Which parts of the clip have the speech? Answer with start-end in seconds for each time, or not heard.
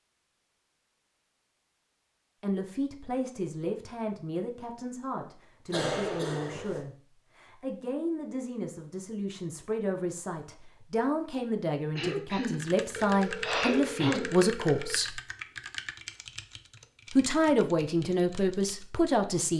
2.4-15.2, 17.1-19.5.